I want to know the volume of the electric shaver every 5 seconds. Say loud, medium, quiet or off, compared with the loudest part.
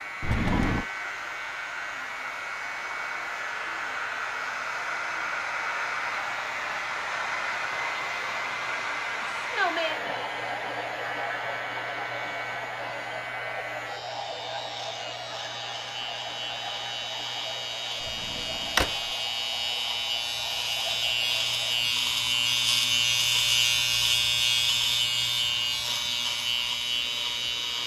quiet, quiet, quiet, medium, loud, loud.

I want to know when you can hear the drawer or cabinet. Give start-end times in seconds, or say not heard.
0.2-0.8, 18.1-18.9.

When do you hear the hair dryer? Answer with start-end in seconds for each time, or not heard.
0.0-27.8.